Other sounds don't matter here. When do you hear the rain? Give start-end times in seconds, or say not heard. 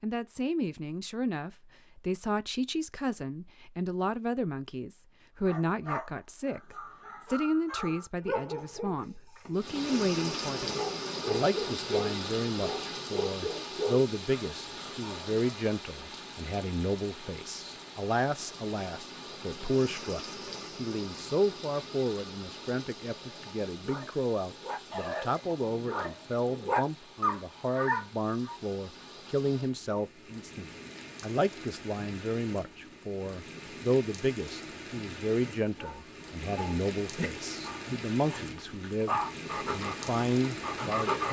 9.6-41.2.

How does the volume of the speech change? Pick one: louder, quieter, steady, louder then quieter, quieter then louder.
steady.